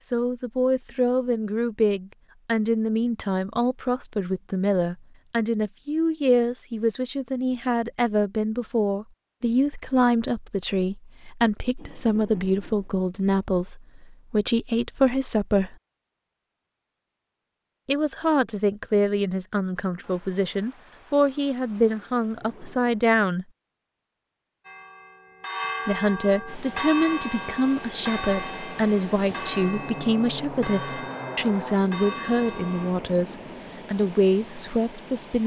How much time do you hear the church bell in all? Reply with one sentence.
The church bell can be heard for 8 seconds in total.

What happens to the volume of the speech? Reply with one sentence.
The loudness of the speech stays about the same.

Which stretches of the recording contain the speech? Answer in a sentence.
The speech can be heard from 0.0 to 15.8 s, from 17.9 to 23.4 s and from 25.9 to 35.4 s.